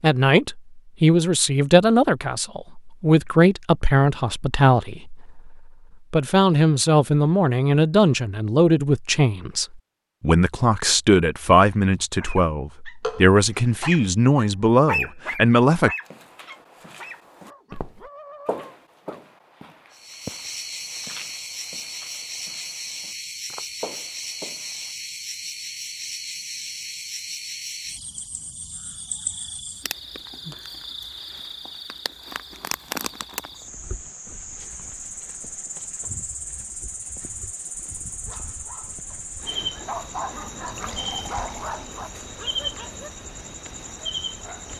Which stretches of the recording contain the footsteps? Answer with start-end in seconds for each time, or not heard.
16.0-24.9.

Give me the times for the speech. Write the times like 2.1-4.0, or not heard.
0.0-15.9.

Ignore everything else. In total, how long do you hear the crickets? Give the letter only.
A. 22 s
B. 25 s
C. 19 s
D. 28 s
B.